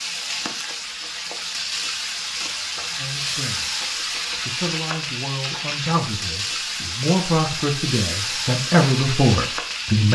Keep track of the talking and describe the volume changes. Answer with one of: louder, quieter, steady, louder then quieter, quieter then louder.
louder.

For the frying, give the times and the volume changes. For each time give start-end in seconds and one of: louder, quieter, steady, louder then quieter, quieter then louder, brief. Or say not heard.
0.0-10.1 steady.